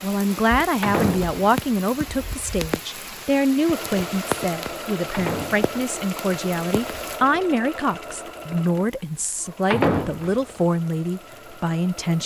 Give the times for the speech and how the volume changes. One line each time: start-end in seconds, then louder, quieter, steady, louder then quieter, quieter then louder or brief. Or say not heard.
0.0-12.2 steady.